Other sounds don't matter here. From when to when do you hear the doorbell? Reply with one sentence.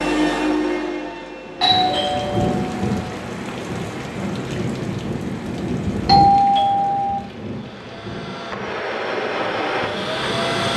You can hear the doorbell from 1.6 to 3.1 s and from 6.0 to 7.2 s.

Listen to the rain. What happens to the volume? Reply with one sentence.
The volume of the rain goes down.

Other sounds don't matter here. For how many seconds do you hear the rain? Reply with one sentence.
The rain can be heard for 9 seconds in total.